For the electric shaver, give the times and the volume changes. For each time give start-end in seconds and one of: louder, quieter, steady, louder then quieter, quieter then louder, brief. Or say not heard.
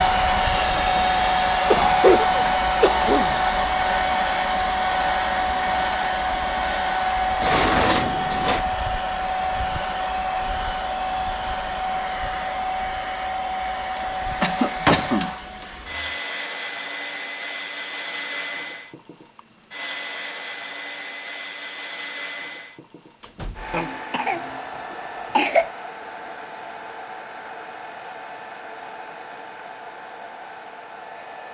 not heard.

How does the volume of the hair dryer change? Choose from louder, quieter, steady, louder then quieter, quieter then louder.
quieter.